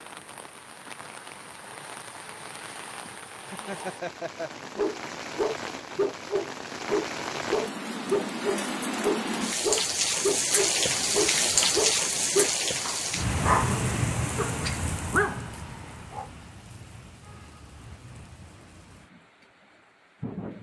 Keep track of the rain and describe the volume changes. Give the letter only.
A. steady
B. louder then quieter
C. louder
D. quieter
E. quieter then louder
B.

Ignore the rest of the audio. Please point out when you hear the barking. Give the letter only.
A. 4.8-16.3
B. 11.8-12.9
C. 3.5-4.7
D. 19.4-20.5
A.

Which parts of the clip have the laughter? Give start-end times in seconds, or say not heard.
3.5-4.7.